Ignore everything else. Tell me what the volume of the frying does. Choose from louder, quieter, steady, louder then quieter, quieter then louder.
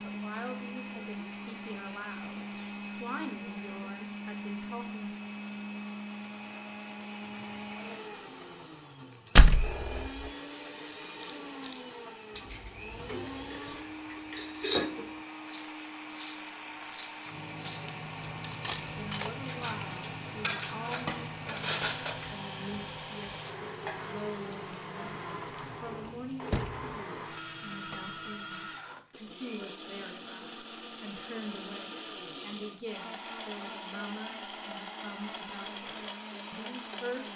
louder then quieter.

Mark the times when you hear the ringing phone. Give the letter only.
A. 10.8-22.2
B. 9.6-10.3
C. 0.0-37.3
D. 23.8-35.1
B.